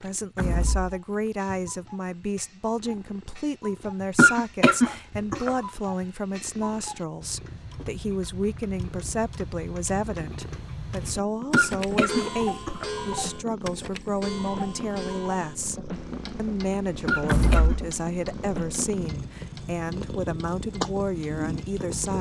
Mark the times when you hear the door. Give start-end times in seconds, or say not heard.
0.3-1.0, 17.2-17.8.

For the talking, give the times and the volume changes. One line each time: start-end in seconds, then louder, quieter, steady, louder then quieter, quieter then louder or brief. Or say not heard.
0.0-22.1 steady.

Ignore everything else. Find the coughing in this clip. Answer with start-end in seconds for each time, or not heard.
4.2-5.5, 11.5-12.9, 17.1-17.8.